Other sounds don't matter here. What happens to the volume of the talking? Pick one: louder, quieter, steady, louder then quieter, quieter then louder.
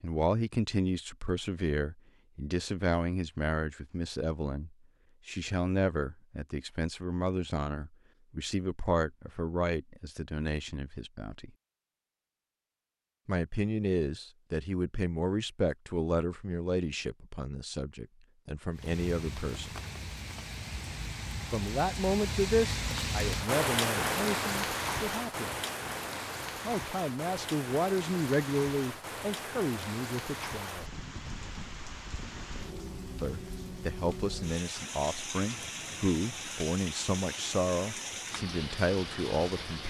steady.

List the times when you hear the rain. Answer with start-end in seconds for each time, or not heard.
18.7-39.8.